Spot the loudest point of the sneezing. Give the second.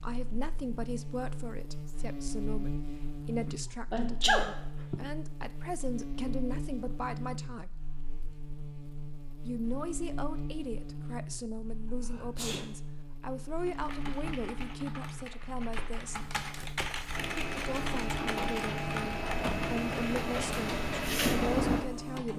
4 s.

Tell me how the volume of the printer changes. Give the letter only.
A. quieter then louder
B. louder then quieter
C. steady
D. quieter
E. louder
E.